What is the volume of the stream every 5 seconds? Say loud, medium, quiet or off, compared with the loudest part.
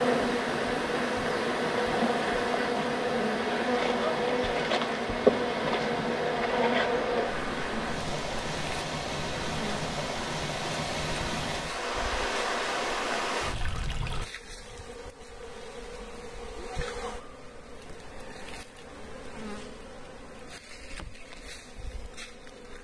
loud, loud, loud, off, off.